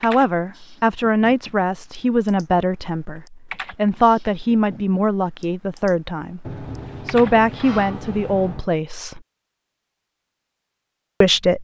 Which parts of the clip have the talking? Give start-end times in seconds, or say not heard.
0.0-9.2, 11.2-11.6.